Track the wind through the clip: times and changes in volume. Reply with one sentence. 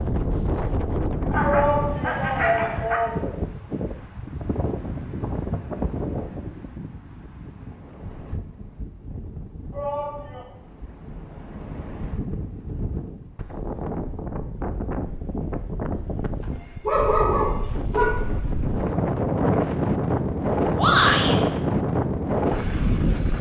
The wind can be heard from 0.0 to 23.3 s, getting quieter then louder.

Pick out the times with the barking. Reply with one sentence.
You can hear the barking from 1.3 to 3.0 s and from 16.4 to 18.2 s.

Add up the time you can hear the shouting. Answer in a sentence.
You can hear the shouting for 3 seconds altogether.